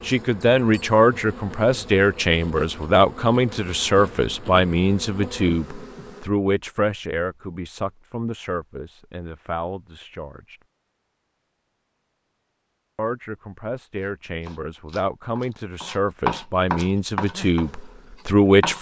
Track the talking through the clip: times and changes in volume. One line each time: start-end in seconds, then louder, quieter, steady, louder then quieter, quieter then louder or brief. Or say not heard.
0.1-10.6 quieter
12.9-18.7 louder.